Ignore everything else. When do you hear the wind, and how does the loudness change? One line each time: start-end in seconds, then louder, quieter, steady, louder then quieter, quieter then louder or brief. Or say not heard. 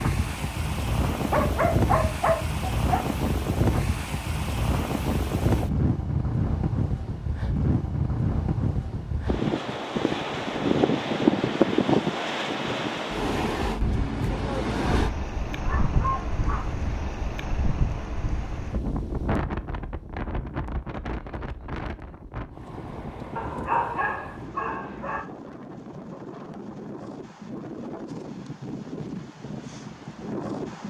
0.0-30.8 quieter.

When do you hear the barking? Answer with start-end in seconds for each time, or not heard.
1.1-3.0, 15.5-16.8, 23.4-25.2.